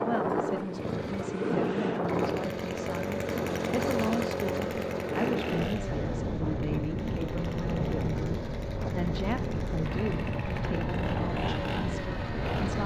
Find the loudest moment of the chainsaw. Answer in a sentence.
The loudest moment of the chainsaw is at 4 seconds.